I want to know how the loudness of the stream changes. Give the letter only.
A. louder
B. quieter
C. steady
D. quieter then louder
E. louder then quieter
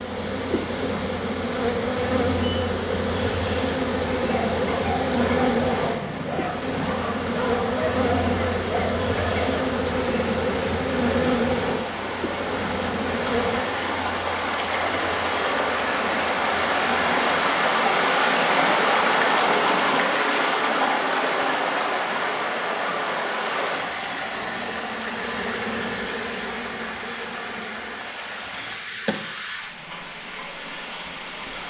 E.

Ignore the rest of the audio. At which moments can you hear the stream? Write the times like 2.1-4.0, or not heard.
0.0-31.6.